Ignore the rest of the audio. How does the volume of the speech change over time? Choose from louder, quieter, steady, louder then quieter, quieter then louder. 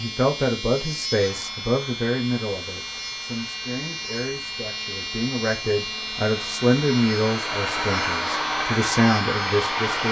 quieter then louder.